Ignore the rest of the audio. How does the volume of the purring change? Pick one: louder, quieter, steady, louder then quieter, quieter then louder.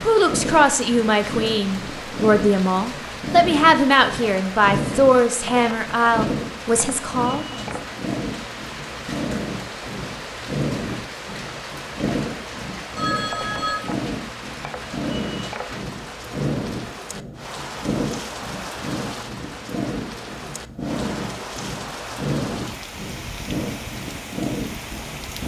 steady.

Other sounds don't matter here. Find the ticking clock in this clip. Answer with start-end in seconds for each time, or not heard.
not heard.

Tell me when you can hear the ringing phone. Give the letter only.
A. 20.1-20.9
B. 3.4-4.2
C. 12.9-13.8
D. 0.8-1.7
C.